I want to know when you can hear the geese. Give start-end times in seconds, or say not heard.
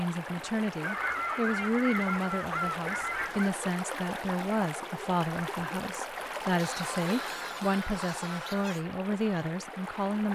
0.8-3.5, 6.5-8.8.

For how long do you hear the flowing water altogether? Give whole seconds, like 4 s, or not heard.
10 s.